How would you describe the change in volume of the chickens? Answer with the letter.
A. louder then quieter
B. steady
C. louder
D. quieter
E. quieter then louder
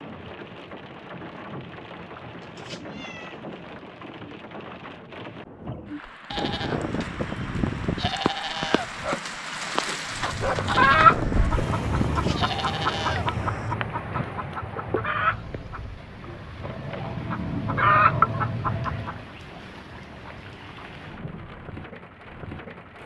E.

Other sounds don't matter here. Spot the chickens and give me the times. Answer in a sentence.
The chickens can be heard from 10.2 to 19.2 s.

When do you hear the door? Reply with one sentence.
You can't hear the door here.